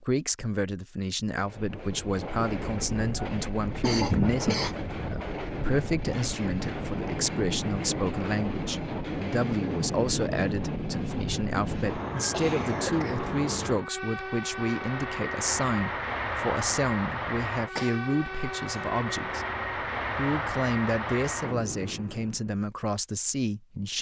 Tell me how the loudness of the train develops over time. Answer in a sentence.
The volume of the train stays about the same.